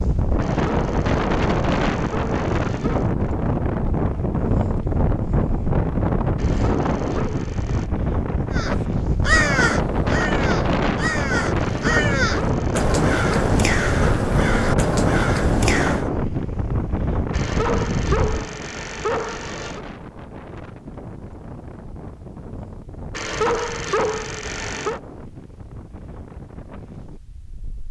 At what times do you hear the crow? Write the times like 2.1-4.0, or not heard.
8.5-16.1.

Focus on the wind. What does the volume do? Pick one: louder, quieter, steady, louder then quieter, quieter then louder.
quieter.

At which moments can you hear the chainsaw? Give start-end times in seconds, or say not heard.
not heard.